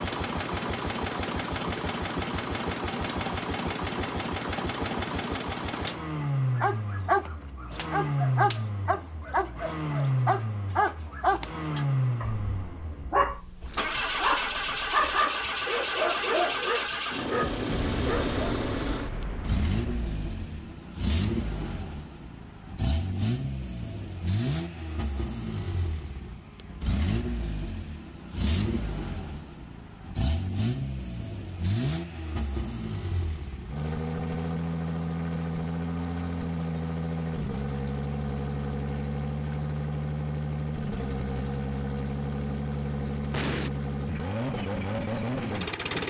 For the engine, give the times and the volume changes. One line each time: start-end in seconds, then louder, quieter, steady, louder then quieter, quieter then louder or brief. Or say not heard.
0.0-46.0 steady.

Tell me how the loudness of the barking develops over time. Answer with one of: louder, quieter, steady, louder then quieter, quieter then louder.
steady.